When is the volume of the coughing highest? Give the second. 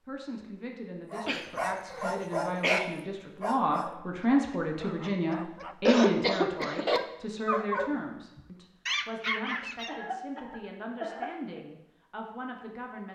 6 s.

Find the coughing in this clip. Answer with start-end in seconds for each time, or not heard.
1.2-2.8, 5.8-7.0, 9.8-11.6.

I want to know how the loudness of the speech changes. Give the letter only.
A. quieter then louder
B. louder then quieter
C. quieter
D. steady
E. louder
B.